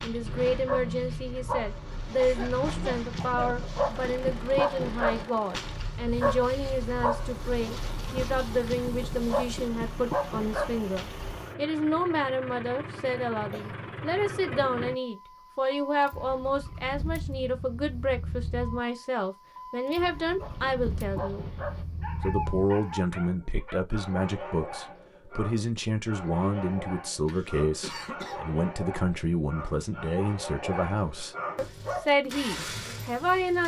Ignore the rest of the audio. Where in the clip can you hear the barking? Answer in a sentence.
The barking can be heard from 0.0 to 11.4 s and from 20.4 to 32.1 s.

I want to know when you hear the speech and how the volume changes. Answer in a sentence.
You can hear the speech from 0.0 to 21.4 s, at a steady volume; and from 22.2 to 33.6 s, at a steady volume.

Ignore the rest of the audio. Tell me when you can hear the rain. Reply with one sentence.
You can't hear the rain here.